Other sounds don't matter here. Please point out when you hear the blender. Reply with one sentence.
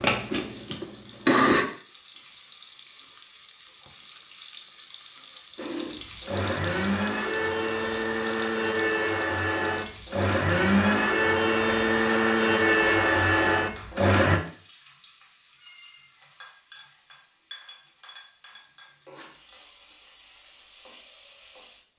The blender can be heard from 0.0 to 1.6 s and from 5.5 to 14.4 s.